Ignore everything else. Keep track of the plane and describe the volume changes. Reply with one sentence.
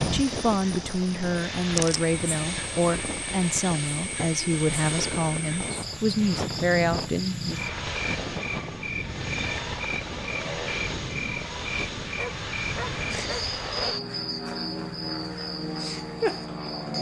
The loudness of the plane stays about the same.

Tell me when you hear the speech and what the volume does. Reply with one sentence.
You can hear the speech from 0.0 to 7.5 s, at a steady volume.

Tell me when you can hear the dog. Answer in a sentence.
The dog can be heard from 12.2 to 14.0 s.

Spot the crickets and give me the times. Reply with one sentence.
You can hear the crickets from 0.0 to 16.9 s.